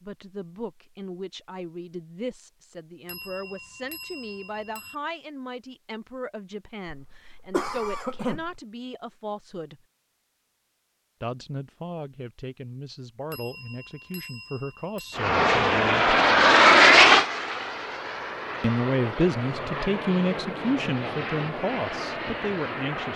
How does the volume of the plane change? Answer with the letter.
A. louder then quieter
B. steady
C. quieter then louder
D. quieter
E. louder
D.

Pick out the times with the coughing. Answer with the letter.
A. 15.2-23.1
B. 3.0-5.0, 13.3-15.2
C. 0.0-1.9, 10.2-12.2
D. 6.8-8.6
D.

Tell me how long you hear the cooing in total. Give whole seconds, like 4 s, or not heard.
not heard.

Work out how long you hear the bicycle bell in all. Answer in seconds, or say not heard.
4 s.